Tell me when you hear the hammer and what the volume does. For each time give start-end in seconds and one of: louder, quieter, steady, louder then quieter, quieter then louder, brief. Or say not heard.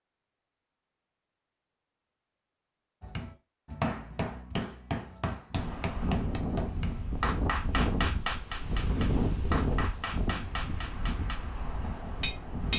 3.0-11.4 steady
12.2-12.7 brief.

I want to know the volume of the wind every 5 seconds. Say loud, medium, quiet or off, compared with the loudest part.
off, loud, medium.